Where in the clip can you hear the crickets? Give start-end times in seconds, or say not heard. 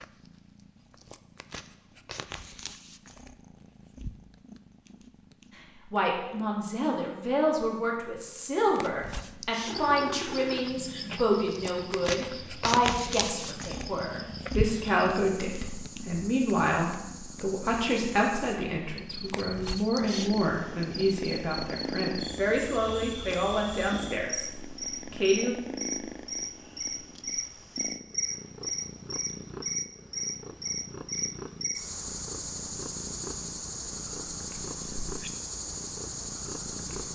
9.7-37.1.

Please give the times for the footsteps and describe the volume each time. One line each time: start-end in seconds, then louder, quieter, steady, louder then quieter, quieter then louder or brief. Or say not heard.
not heard.